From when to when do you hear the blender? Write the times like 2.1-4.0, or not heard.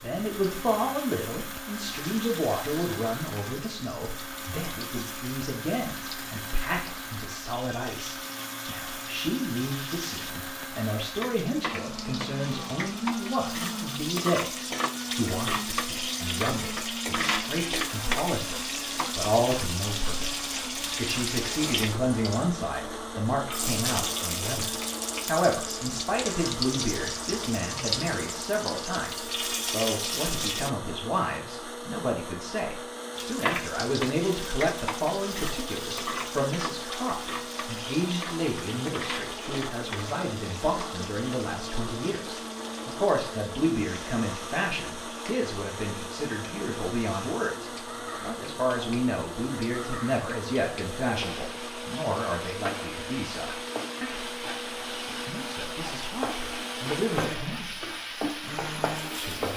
0.0-59.5.